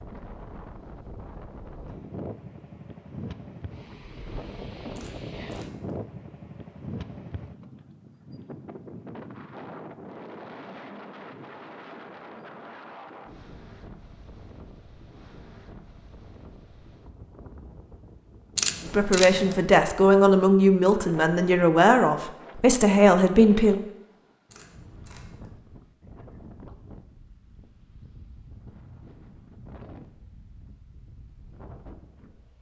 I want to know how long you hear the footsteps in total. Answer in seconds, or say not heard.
not heard.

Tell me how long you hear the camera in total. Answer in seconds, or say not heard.
3 s.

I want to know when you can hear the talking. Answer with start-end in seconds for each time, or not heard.
18.9-23.8.